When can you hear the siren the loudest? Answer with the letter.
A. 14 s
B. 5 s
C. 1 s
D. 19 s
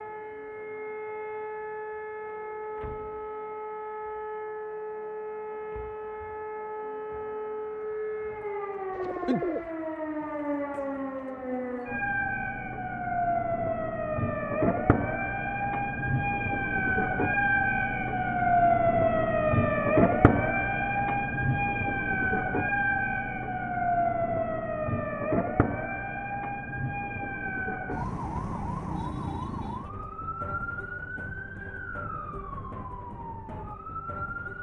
D.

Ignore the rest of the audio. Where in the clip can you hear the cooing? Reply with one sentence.
You can hear the cooing from 8.9 to 9.7 s.